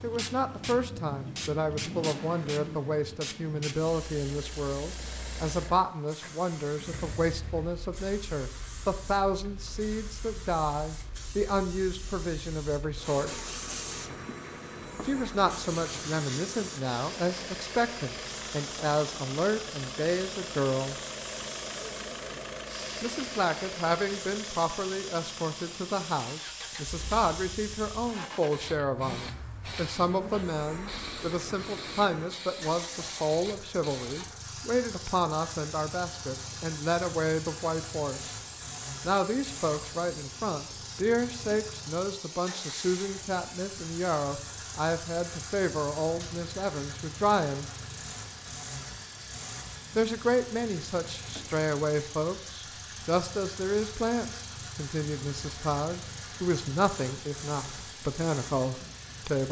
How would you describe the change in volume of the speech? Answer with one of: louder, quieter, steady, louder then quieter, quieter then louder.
steady.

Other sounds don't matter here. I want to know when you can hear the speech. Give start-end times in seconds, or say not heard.
0.0-13.4, 15.1-20.9, 23.0-38.4, 39.0-47.6, 50.0-59.4.